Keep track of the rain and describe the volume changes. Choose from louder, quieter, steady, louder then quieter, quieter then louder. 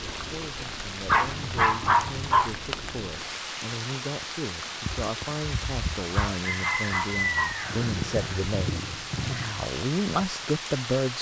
steady.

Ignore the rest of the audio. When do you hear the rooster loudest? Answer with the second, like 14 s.
7 s.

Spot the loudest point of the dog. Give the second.
2 s.